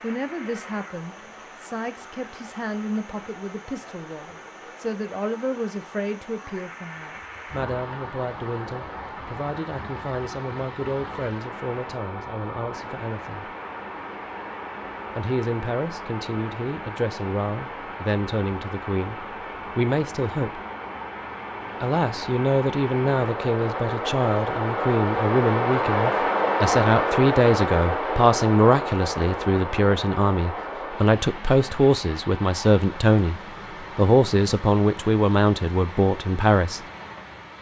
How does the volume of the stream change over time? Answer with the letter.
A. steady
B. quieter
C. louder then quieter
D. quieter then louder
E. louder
C.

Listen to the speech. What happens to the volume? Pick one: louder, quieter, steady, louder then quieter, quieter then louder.
louder.